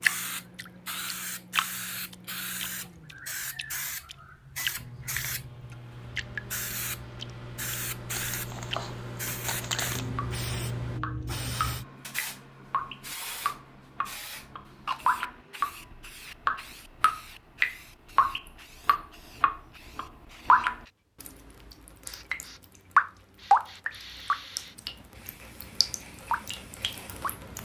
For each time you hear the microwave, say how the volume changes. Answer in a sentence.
The microwave can be heard from 0.0 to 11.0 s, getting louder.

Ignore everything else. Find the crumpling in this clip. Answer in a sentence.
The crumpling can be heard from 8.1 to 10.1 s.